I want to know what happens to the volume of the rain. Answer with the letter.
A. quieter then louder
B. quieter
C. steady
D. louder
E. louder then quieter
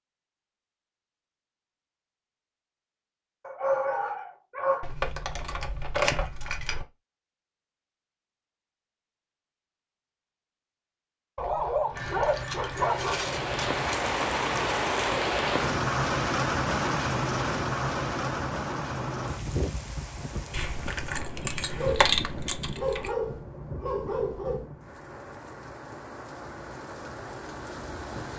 B.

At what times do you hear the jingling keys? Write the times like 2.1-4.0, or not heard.
4.8-6.8, 11.9-13.9, 20.5-23.1.